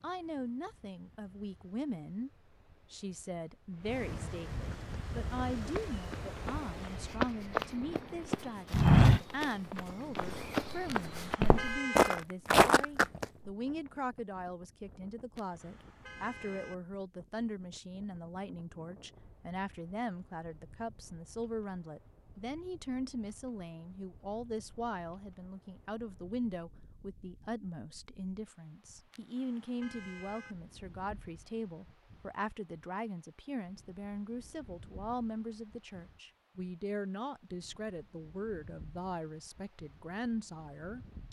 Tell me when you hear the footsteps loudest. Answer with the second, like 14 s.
9 s.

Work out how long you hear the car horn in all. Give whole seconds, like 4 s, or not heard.
4 s.